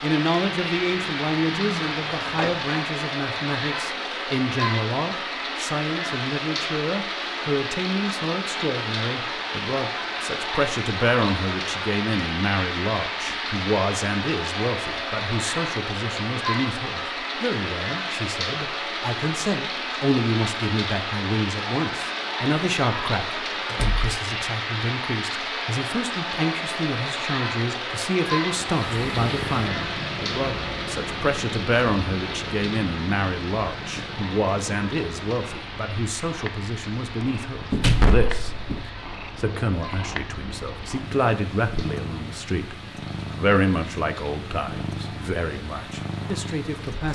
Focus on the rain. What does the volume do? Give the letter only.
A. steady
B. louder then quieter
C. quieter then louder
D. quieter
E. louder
D.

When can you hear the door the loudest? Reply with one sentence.
The volume of the door peaks at 38 seconds.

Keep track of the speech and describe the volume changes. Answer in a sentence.
The volume of the speech stays about the same.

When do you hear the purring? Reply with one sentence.
The purring can be heard from 28.5 to 47.1 s.